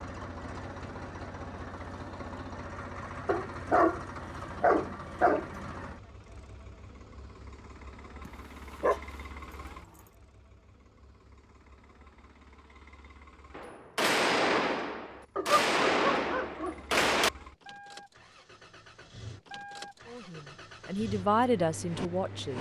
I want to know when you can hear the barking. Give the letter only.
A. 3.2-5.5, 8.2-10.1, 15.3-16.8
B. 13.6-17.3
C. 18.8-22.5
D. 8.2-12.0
A.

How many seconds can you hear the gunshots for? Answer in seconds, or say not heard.
4 s.